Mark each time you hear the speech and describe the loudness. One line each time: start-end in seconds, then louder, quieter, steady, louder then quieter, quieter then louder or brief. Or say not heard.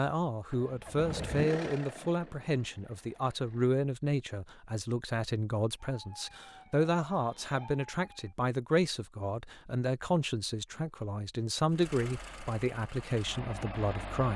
0.0-14.3 steady.